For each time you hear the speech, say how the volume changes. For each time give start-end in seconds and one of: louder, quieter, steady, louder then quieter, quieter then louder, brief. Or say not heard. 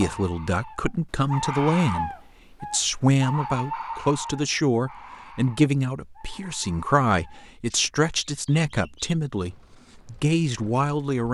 0.0-11.2 steady.